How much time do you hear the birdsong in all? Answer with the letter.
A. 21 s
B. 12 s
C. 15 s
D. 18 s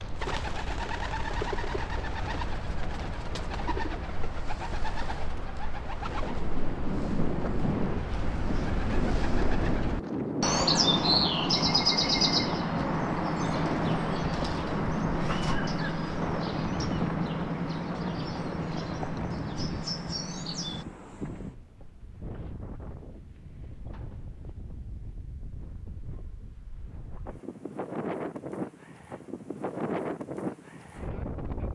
A.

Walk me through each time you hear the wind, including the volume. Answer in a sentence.
You can hear the wind from 6.0 to 31.7 s, getting quieter then louder.